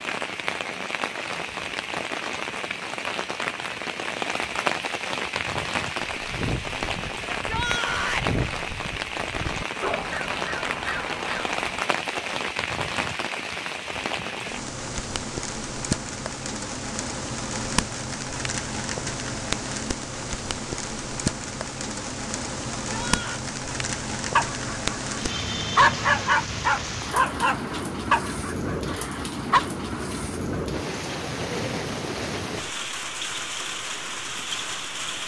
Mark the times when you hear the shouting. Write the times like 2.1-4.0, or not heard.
7.3-8.3, 22.9-23.4.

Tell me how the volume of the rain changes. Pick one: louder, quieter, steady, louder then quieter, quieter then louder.
steady.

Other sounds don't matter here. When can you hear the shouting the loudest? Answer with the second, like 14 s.
8 s.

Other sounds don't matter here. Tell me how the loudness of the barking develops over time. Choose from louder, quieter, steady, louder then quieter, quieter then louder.
louder then quieter.